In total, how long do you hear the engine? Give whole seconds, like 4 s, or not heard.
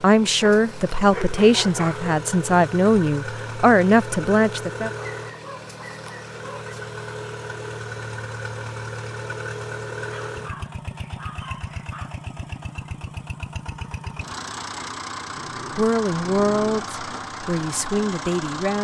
19 s.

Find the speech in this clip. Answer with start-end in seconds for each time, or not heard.
0.0-4.9, 15.7-18.7.